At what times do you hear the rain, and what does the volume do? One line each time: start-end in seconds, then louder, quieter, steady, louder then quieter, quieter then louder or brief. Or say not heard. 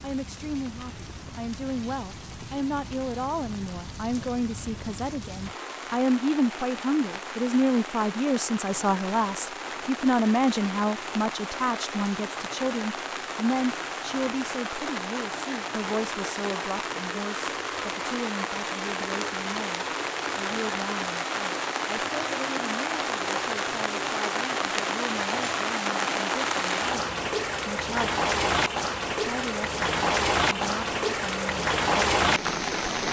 0.0-33.0 louder.